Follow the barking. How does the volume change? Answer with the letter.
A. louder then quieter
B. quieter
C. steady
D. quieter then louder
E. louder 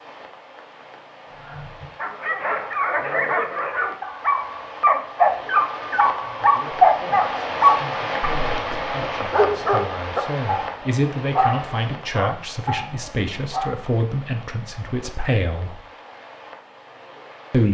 A.